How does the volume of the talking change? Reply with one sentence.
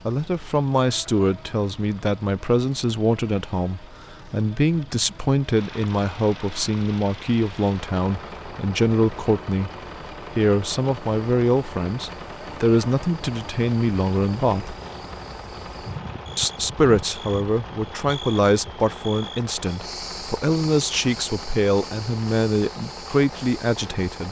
The loudness of the talking stays about the same.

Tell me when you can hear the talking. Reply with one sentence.
You can hear the talking from 0.1 to 9.7 s, from 10.3 to 14.8 s and from 16.4 to 24.2 s.